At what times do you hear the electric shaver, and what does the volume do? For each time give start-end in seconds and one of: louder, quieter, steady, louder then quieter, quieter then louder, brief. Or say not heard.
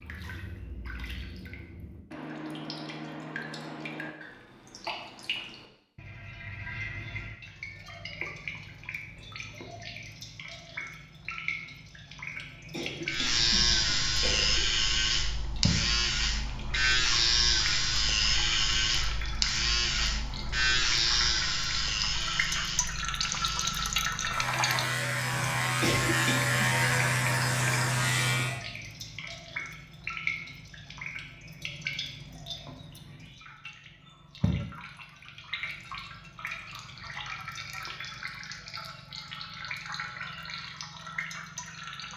13.1-28.6 quieter then louder.